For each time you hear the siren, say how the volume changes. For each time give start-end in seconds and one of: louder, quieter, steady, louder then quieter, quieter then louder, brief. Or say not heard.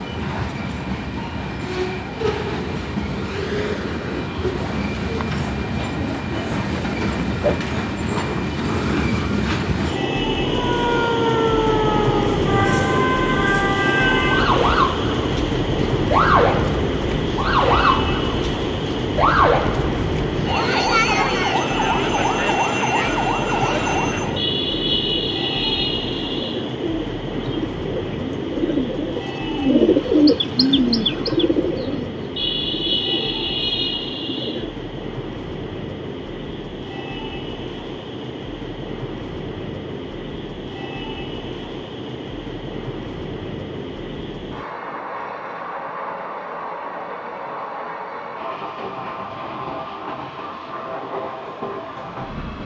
10.4-24.4 steady.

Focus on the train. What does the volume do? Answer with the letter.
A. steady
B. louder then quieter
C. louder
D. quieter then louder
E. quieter
E.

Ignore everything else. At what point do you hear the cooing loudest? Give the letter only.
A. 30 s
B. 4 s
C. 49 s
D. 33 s
A.